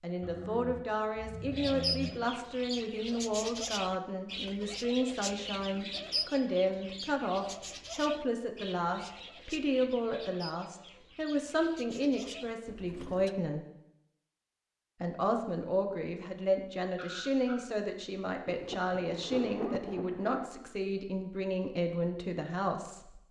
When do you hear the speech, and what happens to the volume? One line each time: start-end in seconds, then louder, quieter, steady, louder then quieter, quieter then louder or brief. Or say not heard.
0.0-13.7 steady
15.0-23.2 steady.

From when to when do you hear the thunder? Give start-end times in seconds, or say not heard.
18.4-20.5.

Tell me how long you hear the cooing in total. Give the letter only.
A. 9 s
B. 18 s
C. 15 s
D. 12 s
D.